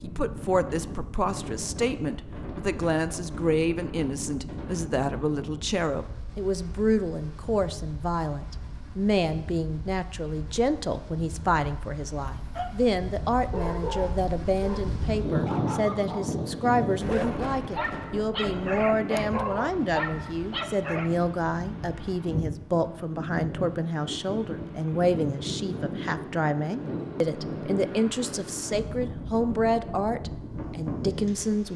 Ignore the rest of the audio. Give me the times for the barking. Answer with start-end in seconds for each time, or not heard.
12.2-21.1.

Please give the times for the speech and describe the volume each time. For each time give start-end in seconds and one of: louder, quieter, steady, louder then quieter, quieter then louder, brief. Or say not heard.
0.0-31.7 steady.